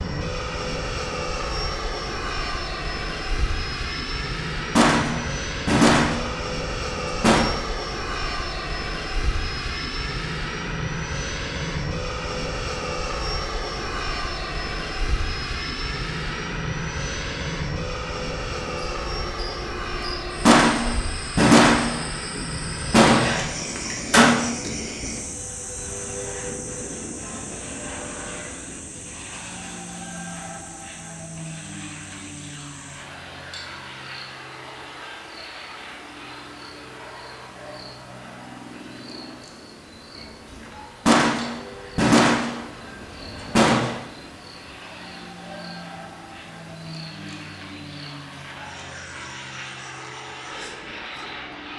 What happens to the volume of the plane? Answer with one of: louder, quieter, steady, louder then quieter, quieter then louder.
quieter.